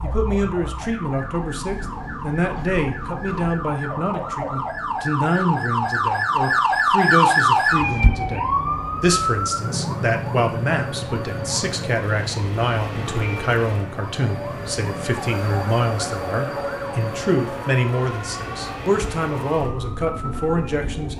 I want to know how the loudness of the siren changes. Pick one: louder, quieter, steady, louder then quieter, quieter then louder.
louder then quieter.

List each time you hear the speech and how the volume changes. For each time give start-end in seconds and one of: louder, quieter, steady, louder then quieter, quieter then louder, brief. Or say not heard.
0.0-21.1 steady.